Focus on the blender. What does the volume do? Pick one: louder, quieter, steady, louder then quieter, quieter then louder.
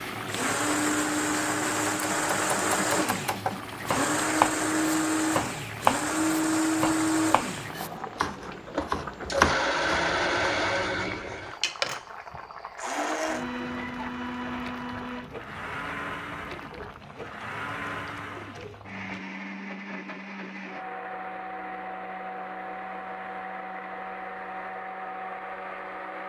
quieter.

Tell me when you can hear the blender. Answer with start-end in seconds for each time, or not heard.
0.2-26.2.